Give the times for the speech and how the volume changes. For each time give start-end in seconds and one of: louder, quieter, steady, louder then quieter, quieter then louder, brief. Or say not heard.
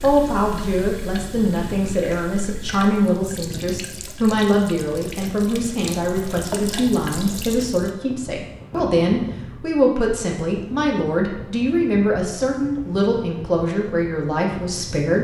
0.0-15.2 steady.